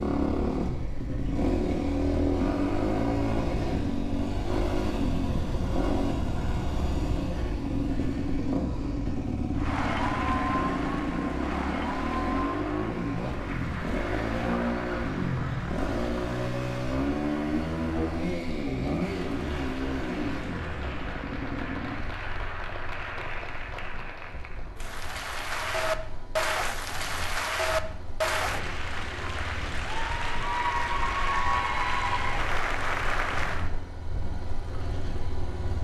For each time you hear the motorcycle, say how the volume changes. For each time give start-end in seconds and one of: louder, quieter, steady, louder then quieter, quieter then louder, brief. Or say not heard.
0.0-35.7 quieter.